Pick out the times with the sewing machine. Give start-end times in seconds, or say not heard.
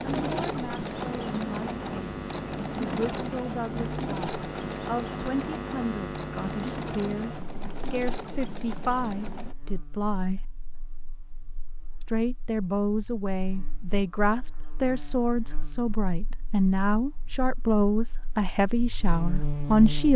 0.0-9.6.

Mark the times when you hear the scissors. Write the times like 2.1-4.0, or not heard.
not heard.